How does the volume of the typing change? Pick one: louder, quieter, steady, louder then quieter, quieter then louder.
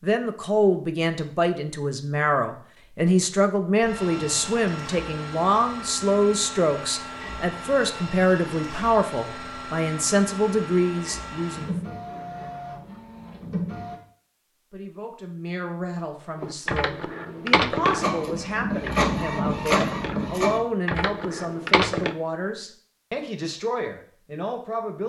quieter then louder.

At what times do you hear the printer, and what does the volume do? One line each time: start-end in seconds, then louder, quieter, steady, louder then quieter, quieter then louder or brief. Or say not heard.
3.8-14.0 steady
17.9-20.6 brief.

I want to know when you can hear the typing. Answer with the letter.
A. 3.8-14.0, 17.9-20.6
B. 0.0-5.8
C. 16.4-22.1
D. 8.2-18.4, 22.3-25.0
C.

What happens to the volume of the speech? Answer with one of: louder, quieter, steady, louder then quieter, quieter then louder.
quieter.